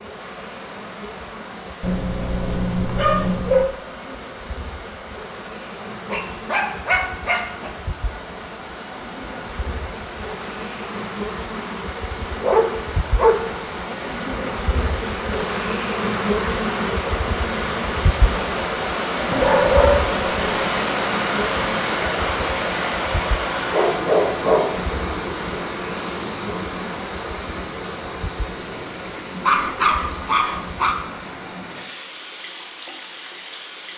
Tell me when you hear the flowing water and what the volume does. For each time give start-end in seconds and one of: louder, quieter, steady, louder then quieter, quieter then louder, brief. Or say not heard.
0.0-33.9 louder then quieter.